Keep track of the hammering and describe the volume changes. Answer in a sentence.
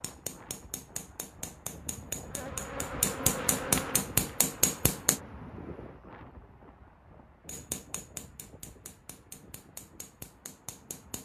The volume of the hammering goes up, then down.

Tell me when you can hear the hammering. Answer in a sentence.
You can hear the hammering from 0.0 to 5.2 s and from 7.5 to 11.1 s.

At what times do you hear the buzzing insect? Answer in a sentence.
You can hear the buzzing insect from 2.2 to 5.5 s.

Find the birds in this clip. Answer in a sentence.
You can't hear the birds here.